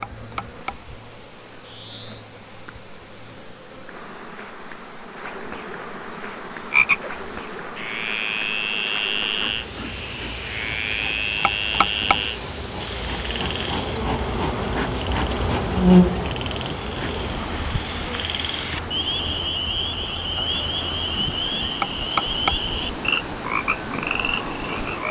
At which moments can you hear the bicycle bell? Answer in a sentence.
You can hear the bicycle bell from 0.0 to 1.1 s, from 11.4 to 12.3 s and from 21.8 to 22.8 s.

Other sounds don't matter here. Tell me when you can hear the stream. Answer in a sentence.
The stream can be heard from 0.0 to 25.0 s.